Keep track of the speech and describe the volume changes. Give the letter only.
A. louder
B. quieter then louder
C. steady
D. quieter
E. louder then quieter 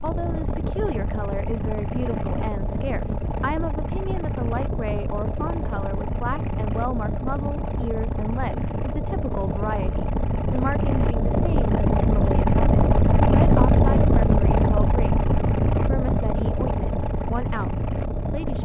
C.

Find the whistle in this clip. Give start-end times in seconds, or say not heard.
not heard.